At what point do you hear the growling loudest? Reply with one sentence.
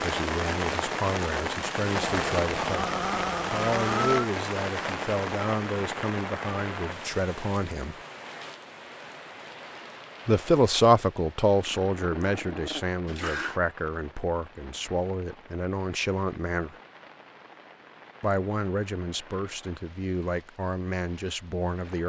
The loudest moment of the growling is at 4 seconds.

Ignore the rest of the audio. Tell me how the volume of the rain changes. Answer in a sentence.
The volume of the rain goes down.